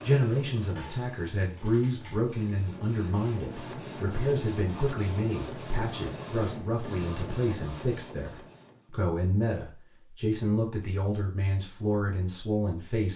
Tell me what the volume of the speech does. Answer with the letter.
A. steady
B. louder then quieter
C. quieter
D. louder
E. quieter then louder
A.